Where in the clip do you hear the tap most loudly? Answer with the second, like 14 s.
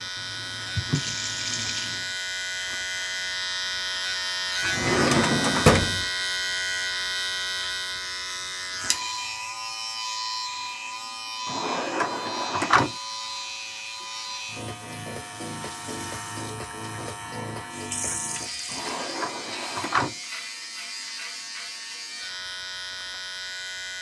1 s.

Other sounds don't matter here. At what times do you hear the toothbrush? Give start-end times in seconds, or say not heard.
not heard.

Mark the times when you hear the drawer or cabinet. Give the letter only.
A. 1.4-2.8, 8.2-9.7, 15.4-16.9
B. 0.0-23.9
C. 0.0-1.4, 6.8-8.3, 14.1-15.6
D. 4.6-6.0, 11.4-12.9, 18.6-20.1
D.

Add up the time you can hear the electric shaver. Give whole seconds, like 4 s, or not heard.
24 s.